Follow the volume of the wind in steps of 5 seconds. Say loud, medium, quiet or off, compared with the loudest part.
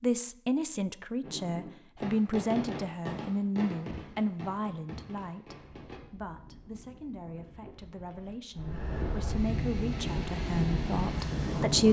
off, medium, loud.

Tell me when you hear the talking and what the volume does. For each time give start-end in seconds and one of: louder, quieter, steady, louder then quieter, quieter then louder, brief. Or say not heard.
0.0-11.8 quieter then louder.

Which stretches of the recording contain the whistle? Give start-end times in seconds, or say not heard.
not heard.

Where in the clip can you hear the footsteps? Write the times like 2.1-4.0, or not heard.
not heard.